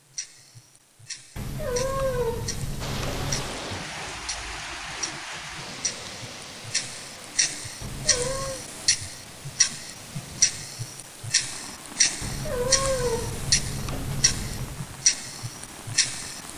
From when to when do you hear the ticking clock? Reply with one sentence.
The ticking clock can be heard from 0.0 to 16.5 s.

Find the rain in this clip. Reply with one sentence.
You can hear the rain from 2.8 to 16.5 s.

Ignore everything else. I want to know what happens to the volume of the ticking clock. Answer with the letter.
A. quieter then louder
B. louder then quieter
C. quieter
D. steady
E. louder
E.